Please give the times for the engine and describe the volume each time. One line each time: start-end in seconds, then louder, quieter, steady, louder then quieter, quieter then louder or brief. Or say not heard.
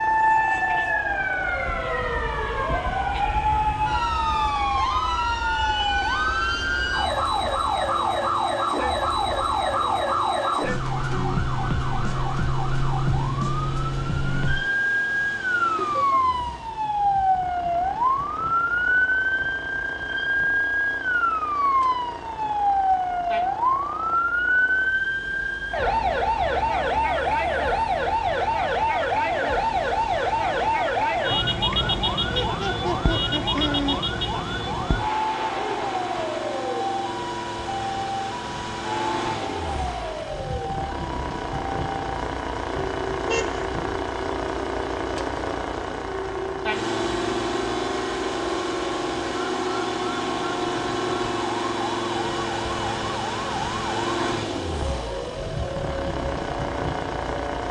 0.0-57.6 louder.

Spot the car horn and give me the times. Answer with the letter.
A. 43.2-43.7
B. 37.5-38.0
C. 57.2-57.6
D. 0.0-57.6
A.